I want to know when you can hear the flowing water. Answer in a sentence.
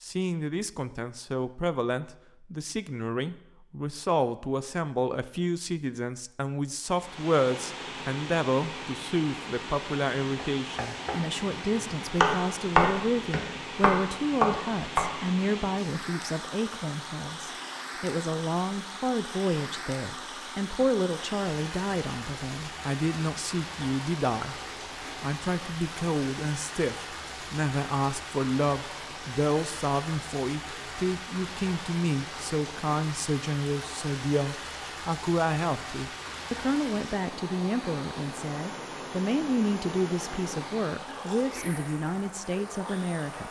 You can hear the flowing water from 6.8 to 43.4 s.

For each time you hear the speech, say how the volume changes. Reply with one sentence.
You can hear the speech from 0.0 to 24.6 s, at a steady volume; and from 25.2 to 43.4 s, at a steady volume.